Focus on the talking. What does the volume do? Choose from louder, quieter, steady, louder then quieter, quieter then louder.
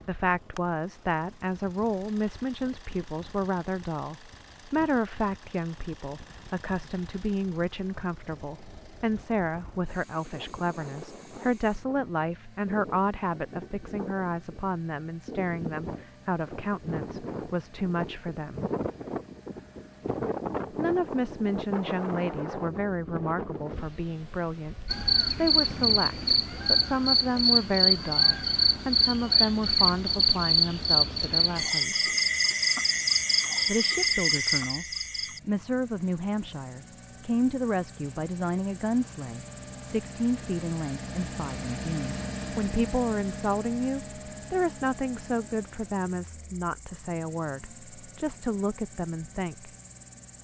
steady.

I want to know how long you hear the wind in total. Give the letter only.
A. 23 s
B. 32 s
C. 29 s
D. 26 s
D.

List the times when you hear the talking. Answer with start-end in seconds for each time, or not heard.
0.1-18.6, 20.7-32.1, 33.6-49.7.